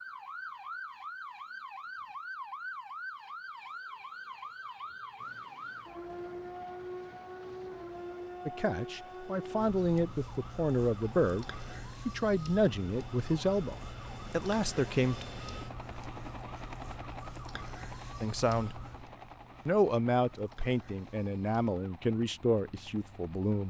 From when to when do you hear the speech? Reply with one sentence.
The speech can be heard from 8.4 to 11.4 s, from 12.1 to 15.2 s, from 18.2 to 18.8 s and from 19.6 to 23.6 s.